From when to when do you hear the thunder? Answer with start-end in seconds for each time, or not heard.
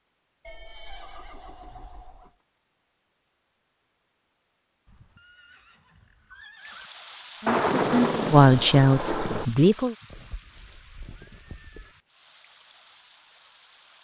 7.5-9.4.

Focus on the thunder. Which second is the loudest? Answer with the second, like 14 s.
8 s.